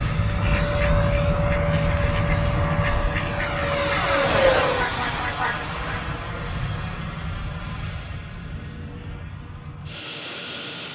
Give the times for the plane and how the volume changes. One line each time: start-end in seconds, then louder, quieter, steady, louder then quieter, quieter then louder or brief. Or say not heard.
0.0-10.9 quieter.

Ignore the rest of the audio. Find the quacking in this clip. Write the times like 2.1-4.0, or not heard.
0.3-6.0.